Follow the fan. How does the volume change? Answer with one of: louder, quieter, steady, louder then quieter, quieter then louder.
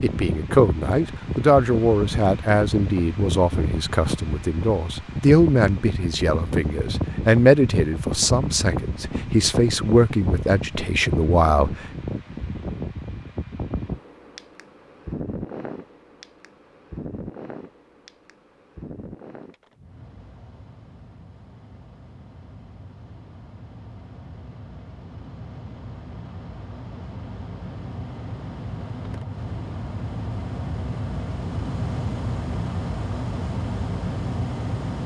quieter then louder.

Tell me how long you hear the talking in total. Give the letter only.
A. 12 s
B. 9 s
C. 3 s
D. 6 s
A.